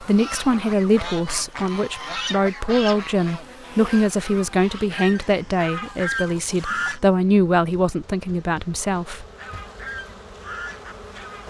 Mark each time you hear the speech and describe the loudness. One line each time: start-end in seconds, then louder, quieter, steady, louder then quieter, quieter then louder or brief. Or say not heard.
0.0-9.2 steady.